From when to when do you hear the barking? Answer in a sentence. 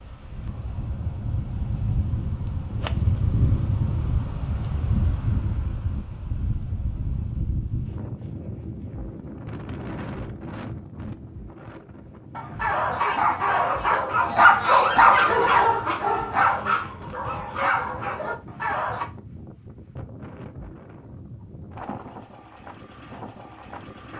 The barking can be heard from 12.3 to 19.1 s.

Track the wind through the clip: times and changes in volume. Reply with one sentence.
The wind can be heard from 0.0 to 24.1 s, getting quieter.